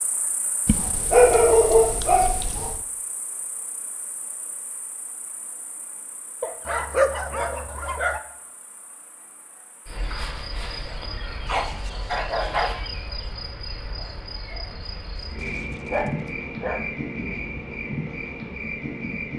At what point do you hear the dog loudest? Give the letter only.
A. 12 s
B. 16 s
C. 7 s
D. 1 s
D.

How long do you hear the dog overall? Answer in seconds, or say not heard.
7 s.